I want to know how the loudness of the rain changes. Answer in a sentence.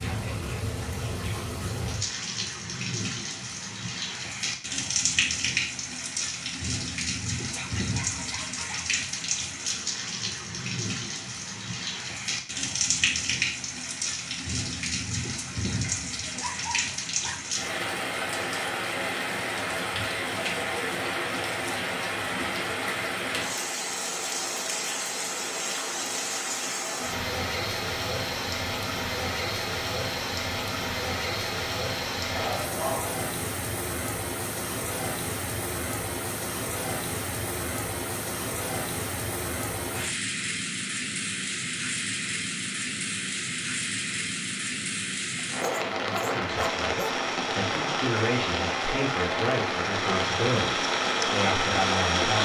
The loudness of the rain stays about the same.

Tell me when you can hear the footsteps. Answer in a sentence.
The footsteps can't be heard in this clip.